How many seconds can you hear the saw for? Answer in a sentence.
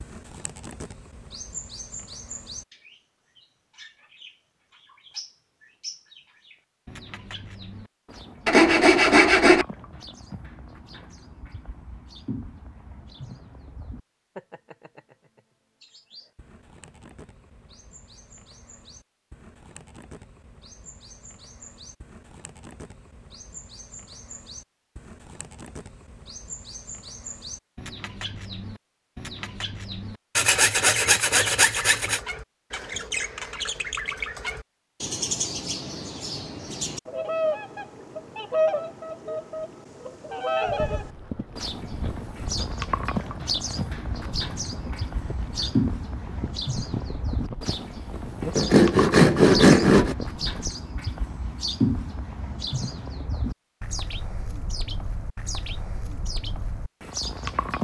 The saw can be heard for 5 seconds in total.